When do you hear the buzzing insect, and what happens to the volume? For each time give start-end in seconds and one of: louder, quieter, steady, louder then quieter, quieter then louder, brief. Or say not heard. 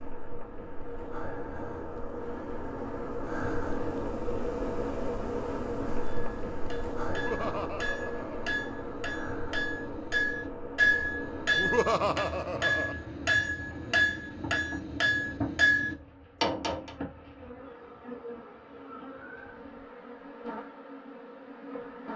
0.0-22.1 quieter.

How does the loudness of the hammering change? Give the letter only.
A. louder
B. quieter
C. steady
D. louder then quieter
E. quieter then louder
A.